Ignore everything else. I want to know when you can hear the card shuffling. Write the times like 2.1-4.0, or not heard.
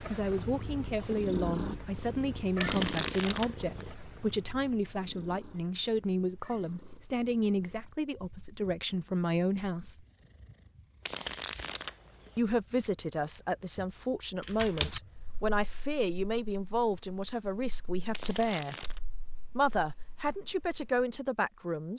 2.6-4.0, 11.1-12.4, 18.1-19.0.